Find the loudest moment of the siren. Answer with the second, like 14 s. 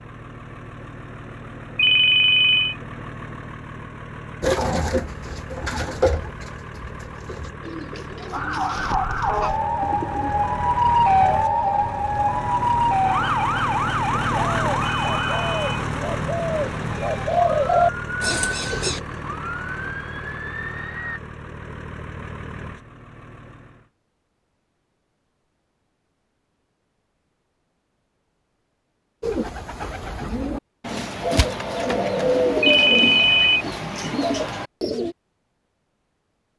11 s.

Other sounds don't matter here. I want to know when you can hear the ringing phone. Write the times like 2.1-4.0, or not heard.
1.8-2.8, 14.8-15.8, 32.6-33.6.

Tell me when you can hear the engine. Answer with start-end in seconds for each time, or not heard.
0.0-23.9.